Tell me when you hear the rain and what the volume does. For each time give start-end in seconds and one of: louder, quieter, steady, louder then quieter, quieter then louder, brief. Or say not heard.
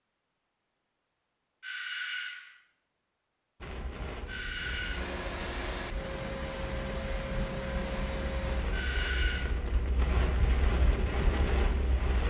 3.6-12.2 louder.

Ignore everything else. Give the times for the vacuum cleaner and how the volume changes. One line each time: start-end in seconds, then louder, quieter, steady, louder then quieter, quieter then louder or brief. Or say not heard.
4.8-8.8 steady.